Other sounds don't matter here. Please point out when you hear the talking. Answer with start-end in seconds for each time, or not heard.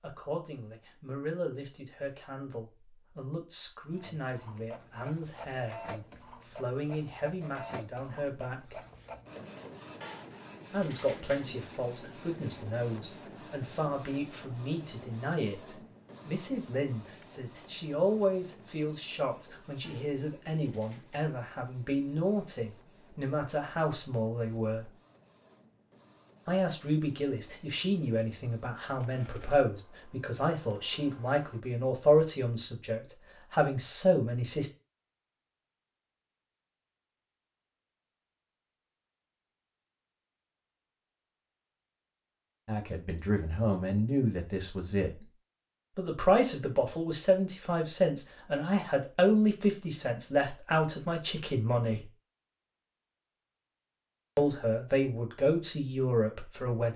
0.0-8.8, 10.7-24.9, 26.4-34.7, 42.6-45.2, 46.0-52.1, 54.4-56.9.